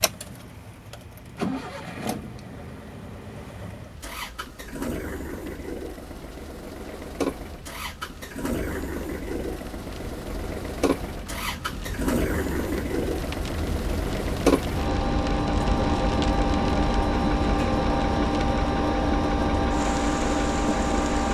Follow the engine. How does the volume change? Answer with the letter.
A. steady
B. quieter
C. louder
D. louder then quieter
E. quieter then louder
C.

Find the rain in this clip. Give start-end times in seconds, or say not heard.
0.0-21.2.